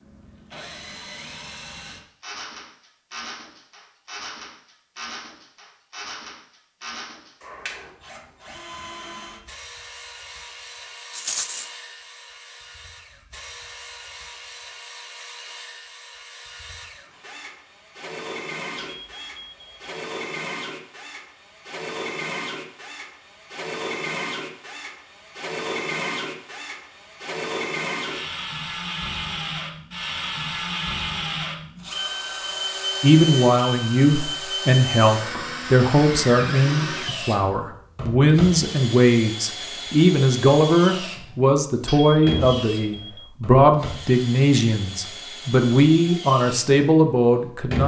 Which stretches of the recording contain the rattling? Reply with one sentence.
The rattling can be heard from 11.1 to 11.7 s.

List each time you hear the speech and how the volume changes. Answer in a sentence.
The speech can be heard from 33.0 to 47.8 s, at a steady volume.